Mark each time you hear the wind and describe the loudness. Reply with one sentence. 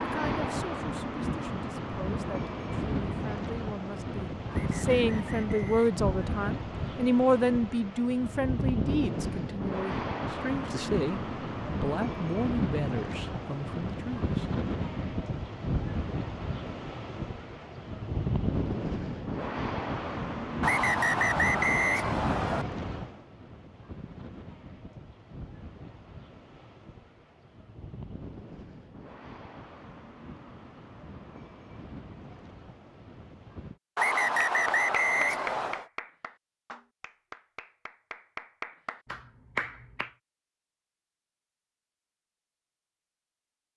The wind can be heard from 0.0 to 33.8 s, getting quieter.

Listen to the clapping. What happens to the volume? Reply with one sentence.
The loudness of the clapping goes down, then up.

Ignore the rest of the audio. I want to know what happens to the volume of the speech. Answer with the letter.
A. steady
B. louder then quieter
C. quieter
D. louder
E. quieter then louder
B.